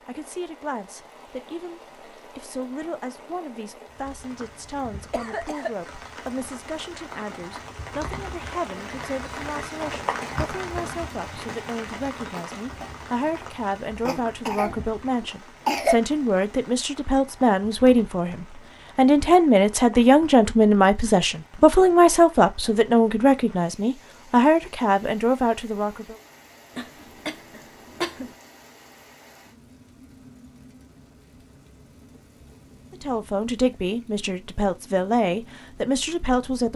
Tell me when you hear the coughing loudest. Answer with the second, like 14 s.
16 s.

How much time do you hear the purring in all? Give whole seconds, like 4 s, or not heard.
not heard.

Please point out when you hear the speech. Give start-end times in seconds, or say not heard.
0.1-26.1, 32.9-36.7.